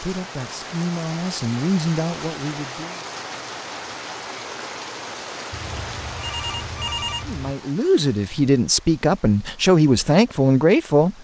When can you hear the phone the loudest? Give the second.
7 s.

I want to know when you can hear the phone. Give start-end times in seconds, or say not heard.
5.5-7.5.